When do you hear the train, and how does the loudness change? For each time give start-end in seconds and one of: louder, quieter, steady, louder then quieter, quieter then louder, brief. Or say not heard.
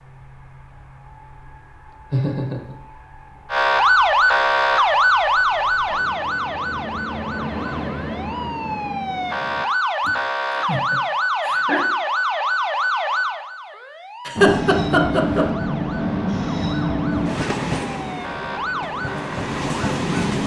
0.0-9.7 louder
14.3-20.4 quieter then louder.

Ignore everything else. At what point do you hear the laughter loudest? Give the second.
15 s.